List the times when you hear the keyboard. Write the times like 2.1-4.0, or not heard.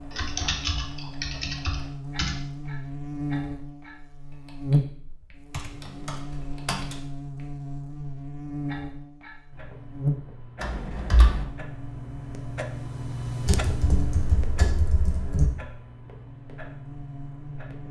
0.1-2.4, 5.5-7.0, 10.6-11.4, 13.4-15.4.